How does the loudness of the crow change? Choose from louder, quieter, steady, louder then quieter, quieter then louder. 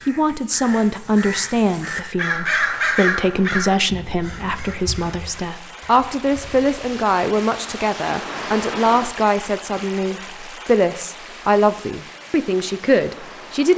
louder then quieter.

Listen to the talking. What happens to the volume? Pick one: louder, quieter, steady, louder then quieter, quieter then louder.
steady.